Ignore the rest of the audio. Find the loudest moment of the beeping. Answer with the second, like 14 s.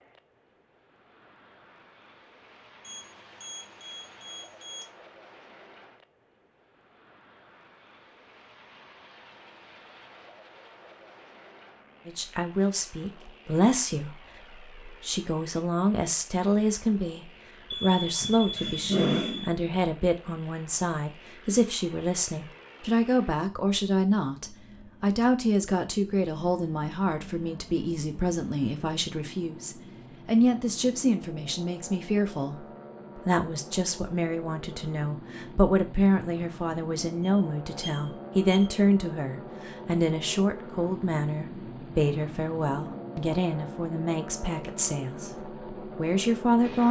19 s.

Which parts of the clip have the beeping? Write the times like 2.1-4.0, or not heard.
2.8-4.8, 17.7-19.5, 37.2-38.8.